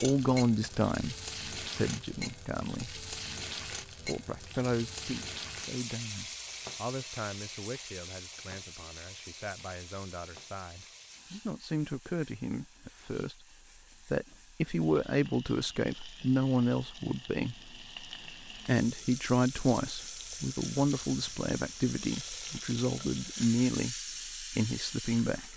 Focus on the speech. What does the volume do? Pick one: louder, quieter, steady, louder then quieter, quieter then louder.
quieter then louder.